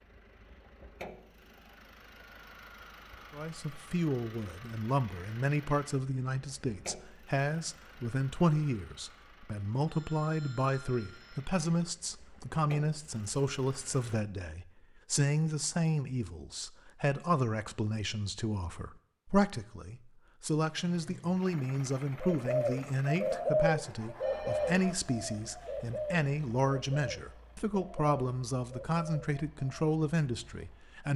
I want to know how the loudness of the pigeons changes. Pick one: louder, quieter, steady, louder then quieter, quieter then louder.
quieter.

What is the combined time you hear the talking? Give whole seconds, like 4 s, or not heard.
28 s.